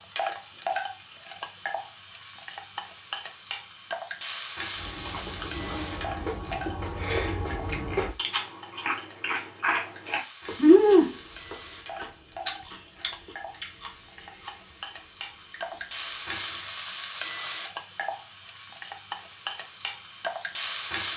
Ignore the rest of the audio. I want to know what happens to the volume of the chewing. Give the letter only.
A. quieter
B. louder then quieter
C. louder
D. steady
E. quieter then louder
B.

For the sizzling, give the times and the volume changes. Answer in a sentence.
You can hear the sizzling from 0.0 to 21.1 s, getting quieter then louder.